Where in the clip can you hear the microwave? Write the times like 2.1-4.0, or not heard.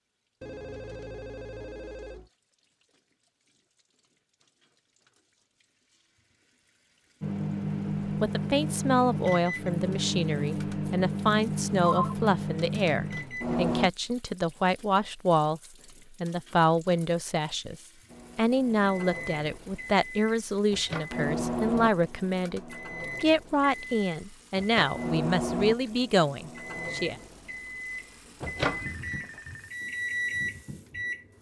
7.2-13.9, 18.1-31.3.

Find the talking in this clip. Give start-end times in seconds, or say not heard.
8.1-15.6, 16.2-17.8, 18.4-27.1.